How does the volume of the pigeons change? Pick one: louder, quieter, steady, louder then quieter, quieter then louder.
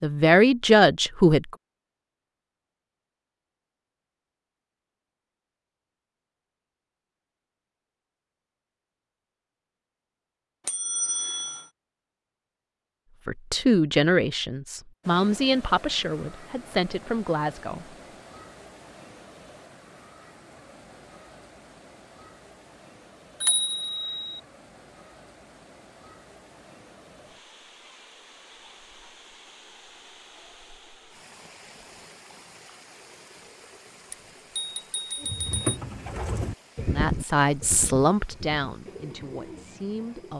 quieter.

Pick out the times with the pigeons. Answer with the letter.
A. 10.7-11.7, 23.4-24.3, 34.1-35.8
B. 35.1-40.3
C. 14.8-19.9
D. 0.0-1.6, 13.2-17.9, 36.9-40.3
B.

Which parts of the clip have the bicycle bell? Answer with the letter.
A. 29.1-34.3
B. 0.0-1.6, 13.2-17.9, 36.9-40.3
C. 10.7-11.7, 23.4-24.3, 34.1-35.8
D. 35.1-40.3
C.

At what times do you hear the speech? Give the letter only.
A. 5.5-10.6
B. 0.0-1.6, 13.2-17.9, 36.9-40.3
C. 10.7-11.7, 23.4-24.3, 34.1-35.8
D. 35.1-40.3
B.